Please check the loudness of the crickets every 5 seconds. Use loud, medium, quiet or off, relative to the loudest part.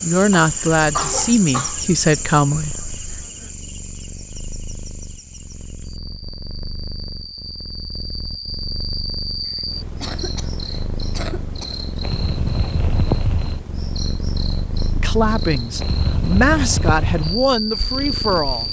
loud, medium, loud, loud.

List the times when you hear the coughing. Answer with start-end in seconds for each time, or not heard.
0.3-1.9, 9.4-11.8.